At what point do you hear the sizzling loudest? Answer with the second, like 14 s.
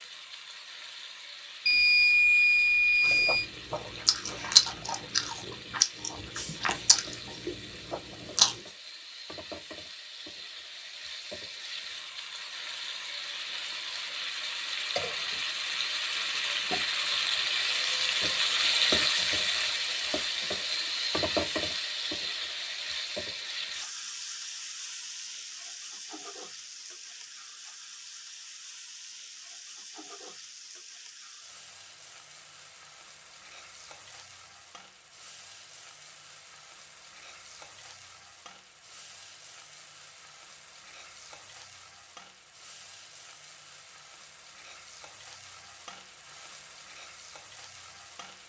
19 s.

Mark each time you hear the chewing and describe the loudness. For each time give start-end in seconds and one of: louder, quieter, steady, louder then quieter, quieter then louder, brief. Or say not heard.
3.0-8.6 louder then quieter.